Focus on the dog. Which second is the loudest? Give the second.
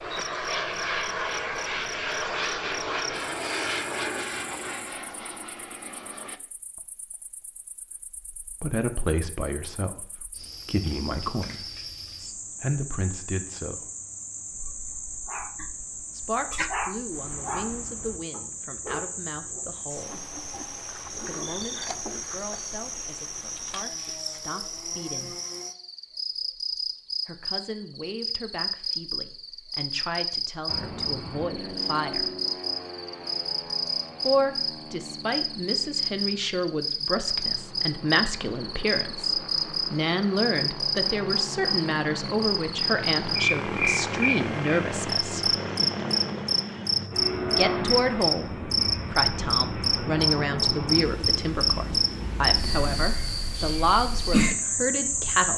17 s.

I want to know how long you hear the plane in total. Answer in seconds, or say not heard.
29 s.